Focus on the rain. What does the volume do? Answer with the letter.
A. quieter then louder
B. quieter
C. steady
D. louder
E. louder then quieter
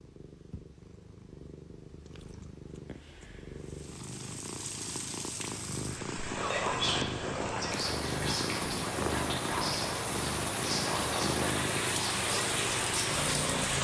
D.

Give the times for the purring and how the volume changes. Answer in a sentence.
The purring can be heard from 0.0 to 13.7 s, getting louder.